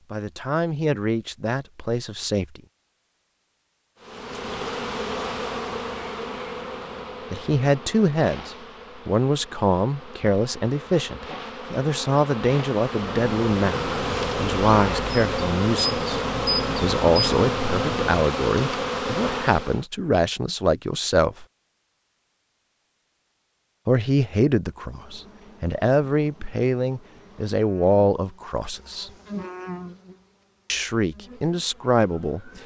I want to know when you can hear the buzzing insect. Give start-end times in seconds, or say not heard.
4.0-19.9, 24.6-32.6.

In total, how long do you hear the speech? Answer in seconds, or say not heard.
23 s.